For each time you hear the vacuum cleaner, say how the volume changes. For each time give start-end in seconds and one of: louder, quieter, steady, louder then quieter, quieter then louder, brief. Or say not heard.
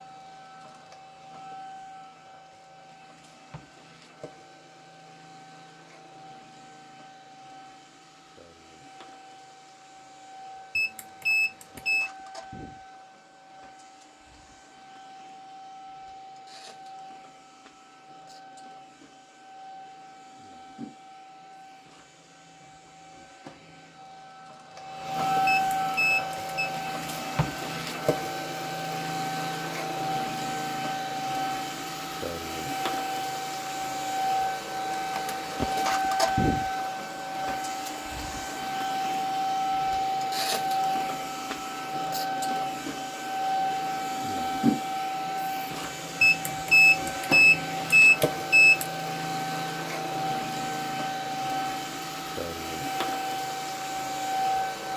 0.0-54.9 louder.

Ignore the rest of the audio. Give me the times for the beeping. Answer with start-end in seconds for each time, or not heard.
10.8-12.1, 25.4-26.7, 46.2-48.9.